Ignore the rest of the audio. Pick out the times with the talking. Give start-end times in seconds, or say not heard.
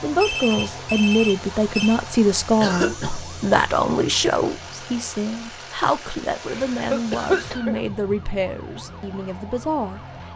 0.0-10.3.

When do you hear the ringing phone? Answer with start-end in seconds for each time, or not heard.
0.2-2.0.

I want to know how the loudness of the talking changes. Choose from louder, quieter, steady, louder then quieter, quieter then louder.
quieter.